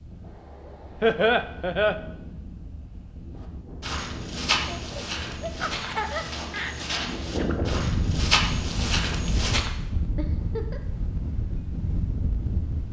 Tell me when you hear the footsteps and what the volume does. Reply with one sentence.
You can hear the footsteps from 3.4 to 9.7 s, getting quieter then louder.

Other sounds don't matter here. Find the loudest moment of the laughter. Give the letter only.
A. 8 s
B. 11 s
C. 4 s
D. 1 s
D.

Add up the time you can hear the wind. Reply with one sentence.
You can hear the wind for 13 seconds altogether.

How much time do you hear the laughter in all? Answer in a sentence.
You can hear the laughter for 4 seconds altogether.